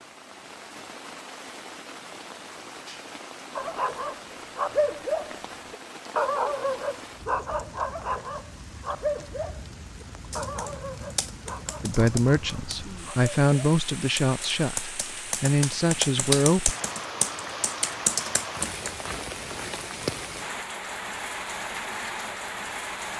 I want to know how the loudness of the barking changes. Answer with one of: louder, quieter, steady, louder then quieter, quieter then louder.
quieter.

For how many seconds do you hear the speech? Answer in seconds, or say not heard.
5 s.